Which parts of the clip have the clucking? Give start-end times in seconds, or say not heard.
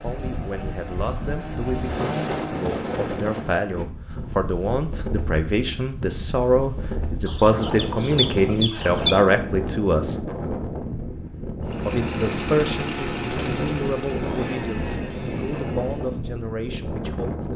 7.2-9.2.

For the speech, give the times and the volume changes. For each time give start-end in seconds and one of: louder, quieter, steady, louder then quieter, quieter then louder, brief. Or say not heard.
0.0-10.2 louder
11.8-17.5 quieter.